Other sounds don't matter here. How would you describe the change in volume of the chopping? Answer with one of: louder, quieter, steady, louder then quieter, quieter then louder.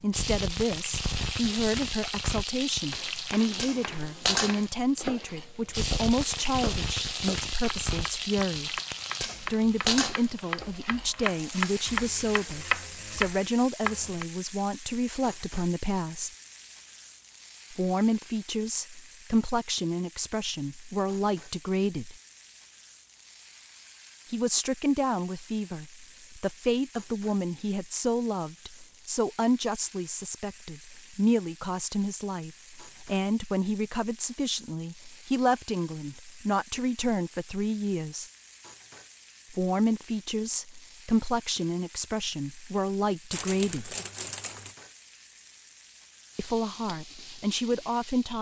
louder.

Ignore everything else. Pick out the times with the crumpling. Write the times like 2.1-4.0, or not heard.
43.3-44.8.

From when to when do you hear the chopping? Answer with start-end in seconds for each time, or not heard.
2.9-14.2.